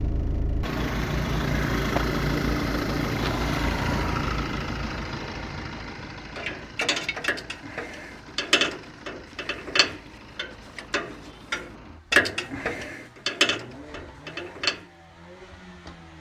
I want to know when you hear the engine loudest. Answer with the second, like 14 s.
2 s.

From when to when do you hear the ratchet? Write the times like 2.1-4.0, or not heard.
6.3-14.8.